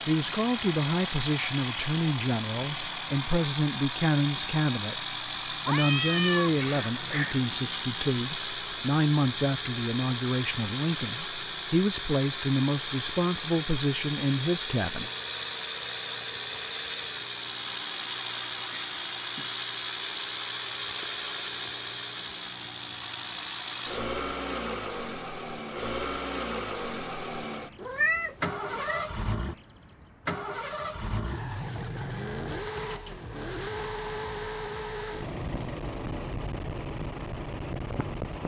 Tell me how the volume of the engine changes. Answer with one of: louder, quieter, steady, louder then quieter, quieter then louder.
steady.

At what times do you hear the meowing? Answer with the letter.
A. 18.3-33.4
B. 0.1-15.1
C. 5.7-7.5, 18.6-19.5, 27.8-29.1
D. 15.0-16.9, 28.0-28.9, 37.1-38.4
C.